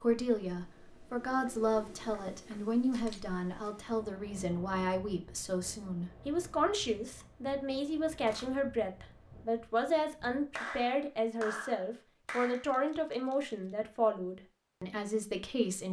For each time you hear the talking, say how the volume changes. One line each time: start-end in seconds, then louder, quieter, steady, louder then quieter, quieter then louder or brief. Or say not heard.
0.0-15.8 steady.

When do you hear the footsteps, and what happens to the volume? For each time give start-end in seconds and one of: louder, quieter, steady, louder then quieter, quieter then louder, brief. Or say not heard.
not heard.